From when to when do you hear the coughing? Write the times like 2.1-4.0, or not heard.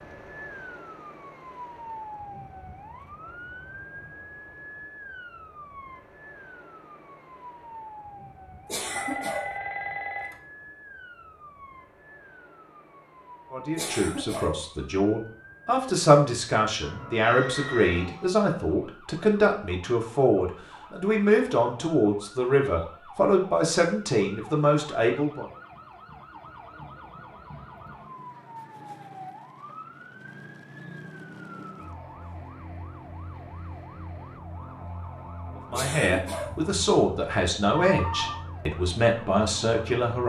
8.7-9.6, 13.8-14.7, 35.7-36.6.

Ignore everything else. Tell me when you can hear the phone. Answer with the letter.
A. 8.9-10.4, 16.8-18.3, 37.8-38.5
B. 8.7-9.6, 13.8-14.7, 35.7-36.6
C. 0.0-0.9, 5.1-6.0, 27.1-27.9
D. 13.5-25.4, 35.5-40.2
A.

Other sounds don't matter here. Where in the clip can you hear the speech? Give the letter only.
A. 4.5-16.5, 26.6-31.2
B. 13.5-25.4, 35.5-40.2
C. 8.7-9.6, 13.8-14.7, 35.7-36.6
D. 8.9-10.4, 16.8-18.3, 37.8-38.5
B.